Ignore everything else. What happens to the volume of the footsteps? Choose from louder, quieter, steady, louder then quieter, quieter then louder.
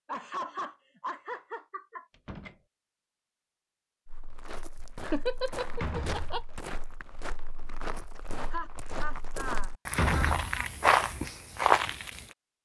louder.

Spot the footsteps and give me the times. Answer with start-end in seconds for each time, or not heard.
4.0-12.2.